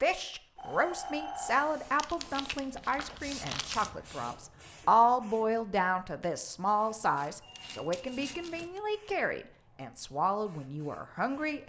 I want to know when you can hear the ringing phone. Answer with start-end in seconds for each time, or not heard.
0.6-2.0, 7.4-8.5.